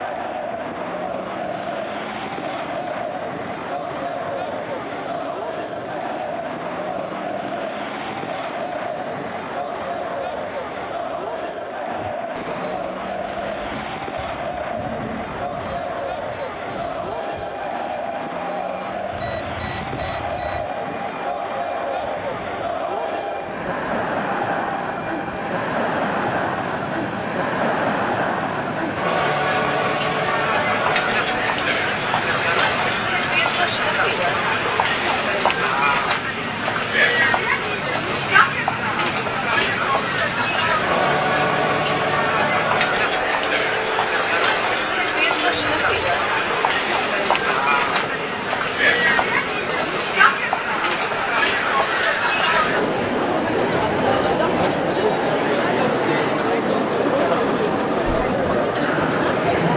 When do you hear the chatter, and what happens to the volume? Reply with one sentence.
The chatter can be heard from 0.0 to 59.7 s, getting louder.